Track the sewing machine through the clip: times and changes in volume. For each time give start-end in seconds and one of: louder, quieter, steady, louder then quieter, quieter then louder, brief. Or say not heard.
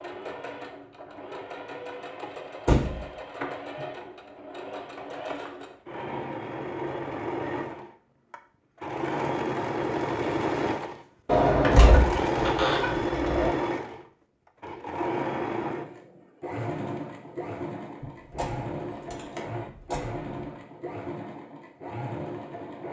0.0-22.8 louder then quieter.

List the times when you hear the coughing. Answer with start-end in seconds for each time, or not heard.
not heard.